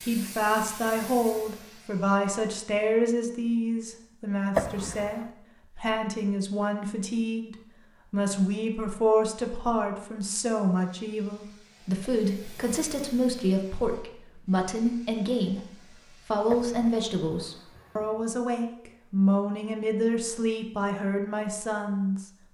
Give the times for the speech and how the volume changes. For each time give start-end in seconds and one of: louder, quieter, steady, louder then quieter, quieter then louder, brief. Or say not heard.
0.0-22.2 steady.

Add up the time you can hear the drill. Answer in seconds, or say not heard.
not heard.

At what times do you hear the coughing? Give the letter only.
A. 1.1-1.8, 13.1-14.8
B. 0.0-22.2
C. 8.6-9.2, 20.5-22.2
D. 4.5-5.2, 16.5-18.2
D.